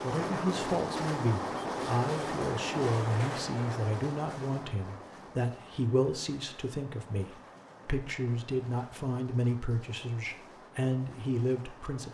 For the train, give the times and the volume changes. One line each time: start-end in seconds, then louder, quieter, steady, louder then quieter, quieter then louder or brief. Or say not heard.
0.0-12.1 quieter.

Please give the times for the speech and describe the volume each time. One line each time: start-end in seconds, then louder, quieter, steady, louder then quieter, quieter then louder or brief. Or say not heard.
0.0-12.1 steady.